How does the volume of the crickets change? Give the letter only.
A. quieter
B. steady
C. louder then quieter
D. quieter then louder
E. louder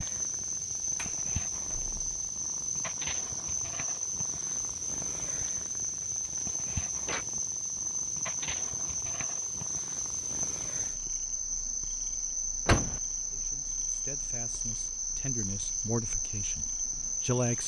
B.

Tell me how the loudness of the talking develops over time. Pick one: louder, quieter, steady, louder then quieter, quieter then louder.
louder then quieter.